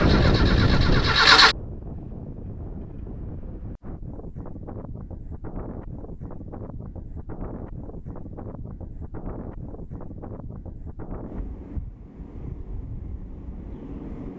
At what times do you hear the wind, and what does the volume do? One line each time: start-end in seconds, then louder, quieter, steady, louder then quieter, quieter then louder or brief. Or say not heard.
0.0-14.3 quieter.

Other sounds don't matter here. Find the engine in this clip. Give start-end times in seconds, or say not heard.
0.0-1.6.